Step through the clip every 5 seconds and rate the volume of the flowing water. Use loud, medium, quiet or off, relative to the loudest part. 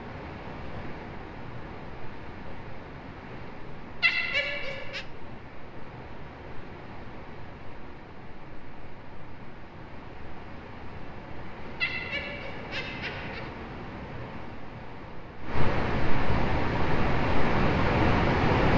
quiet, quiet, quiet, loud.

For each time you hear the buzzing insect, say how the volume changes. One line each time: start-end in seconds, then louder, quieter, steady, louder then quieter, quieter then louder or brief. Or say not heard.
not heard.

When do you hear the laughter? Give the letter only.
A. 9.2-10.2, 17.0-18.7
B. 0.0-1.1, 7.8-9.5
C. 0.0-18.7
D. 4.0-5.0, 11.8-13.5
D.